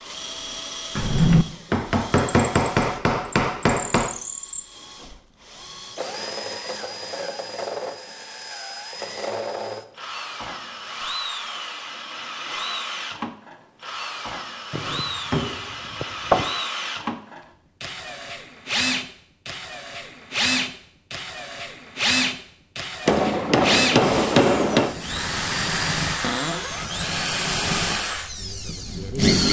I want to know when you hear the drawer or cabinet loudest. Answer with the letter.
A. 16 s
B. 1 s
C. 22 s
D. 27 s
B.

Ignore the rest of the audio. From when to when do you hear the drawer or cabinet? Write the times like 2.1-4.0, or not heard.
0.9-1.4, 14.7-16.4, 26.2-26.9.